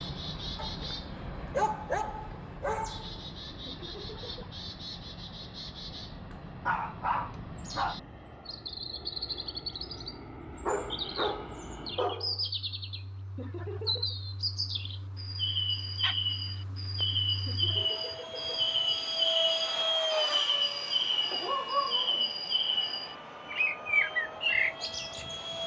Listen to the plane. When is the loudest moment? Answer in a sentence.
The volume of the plane peaks at 20 seconds.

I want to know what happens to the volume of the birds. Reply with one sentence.
The loudness of the birds goes up.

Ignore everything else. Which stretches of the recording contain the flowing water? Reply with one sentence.
The flowing water can't be heard in this clip.